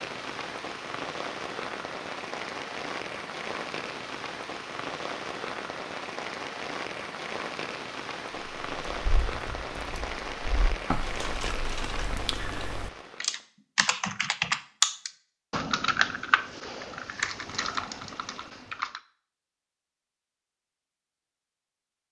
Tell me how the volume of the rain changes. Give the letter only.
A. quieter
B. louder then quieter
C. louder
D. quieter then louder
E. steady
E.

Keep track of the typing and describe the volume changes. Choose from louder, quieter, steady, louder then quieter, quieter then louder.
louder then quieter.